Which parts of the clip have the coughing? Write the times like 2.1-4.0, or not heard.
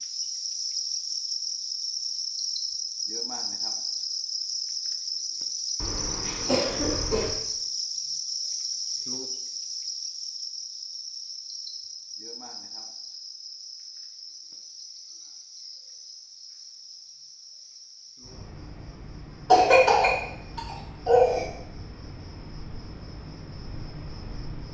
5.8-7.3, 19.5-21.4.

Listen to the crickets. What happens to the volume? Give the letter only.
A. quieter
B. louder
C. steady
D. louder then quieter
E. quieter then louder
A.